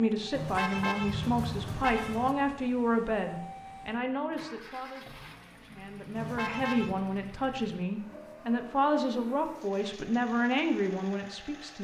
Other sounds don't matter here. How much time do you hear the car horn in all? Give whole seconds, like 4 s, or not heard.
3 s.